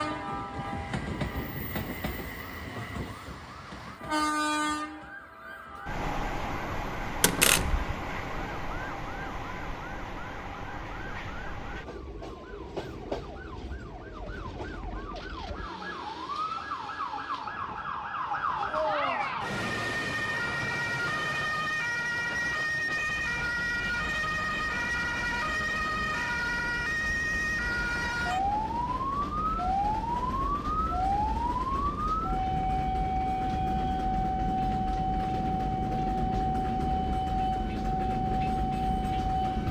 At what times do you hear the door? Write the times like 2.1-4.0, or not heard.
7.2-7.8.